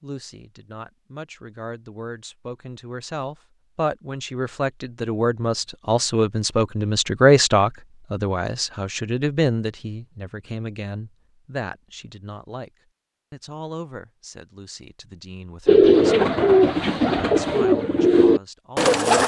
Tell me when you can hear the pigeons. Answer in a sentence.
The pigeons can be heard from 15.7 to 19.2 s.